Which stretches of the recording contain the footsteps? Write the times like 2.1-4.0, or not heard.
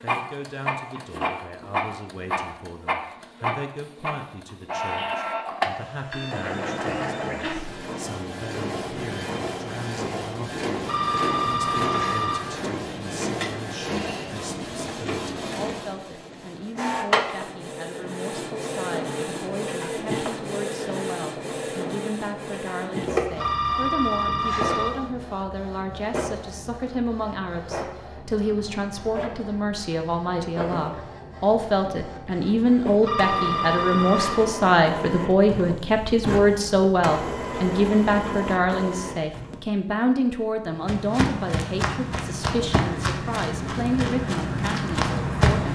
40.6-45.7.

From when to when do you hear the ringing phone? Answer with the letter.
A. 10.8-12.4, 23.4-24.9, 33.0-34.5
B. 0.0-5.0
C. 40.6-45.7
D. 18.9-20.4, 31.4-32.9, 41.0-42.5
A.